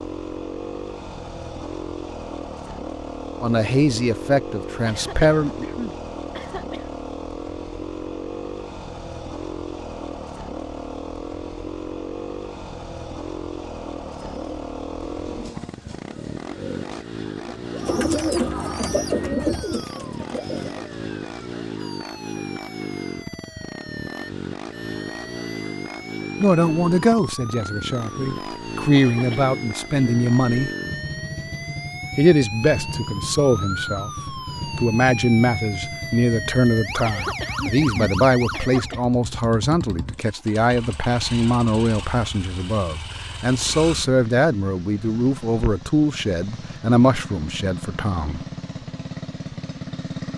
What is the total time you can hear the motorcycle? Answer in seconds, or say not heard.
50 s.